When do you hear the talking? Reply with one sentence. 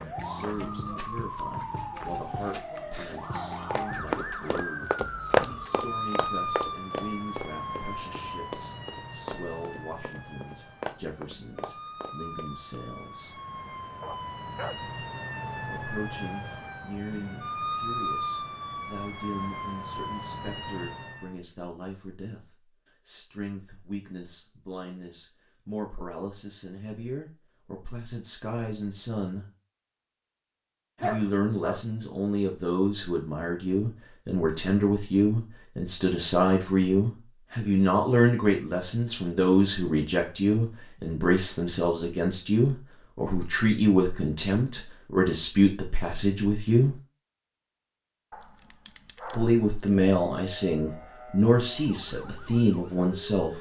The talking can be heard from 0.1 to 13.3 s, from 15.7 to 29.4 s, from 31.0 to 47.0 s and from 49.3 to 53.5 s.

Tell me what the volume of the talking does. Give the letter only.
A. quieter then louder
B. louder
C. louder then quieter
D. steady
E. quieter
B.